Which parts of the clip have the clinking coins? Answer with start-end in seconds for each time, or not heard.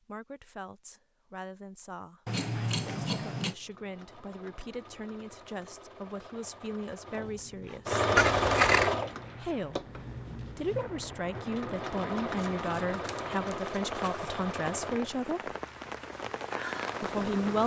not heard.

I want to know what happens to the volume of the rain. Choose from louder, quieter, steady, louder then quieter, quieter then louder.
louder.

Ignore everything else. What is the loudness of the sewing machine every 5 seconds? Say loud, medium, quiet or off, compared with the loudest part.
quiet, loud, medium, quiet.